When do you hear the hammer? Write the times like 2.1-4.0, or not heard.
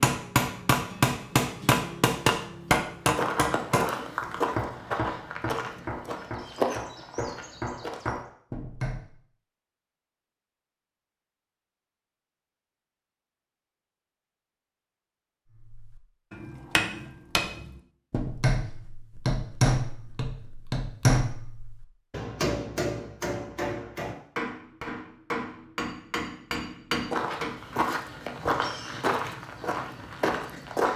0.0-9.2, 15.6-27.6.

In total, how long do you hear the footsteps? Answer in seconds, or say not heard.
9 s.